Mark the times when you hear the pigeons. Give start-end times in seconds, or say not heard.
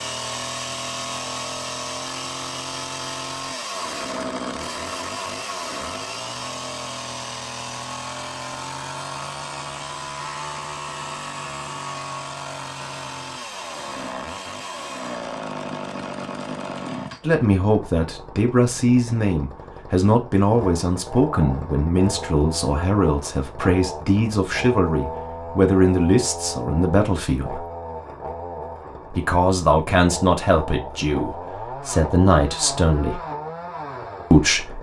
not heard.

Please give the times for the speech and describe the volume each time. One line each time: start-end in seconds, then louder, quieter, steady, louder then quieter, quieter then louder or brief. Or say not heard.
17.2-27.6 steady
29.1-33.2 quieter then louder
34.3-34.7 brief.